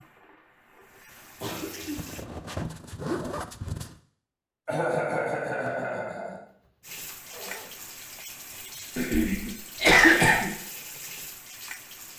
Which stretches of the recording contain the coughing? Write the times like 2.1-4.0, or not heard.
1.4-2.0, 4.7-6.4, 8.9-10.5.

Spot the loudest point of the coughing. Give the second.
10 s.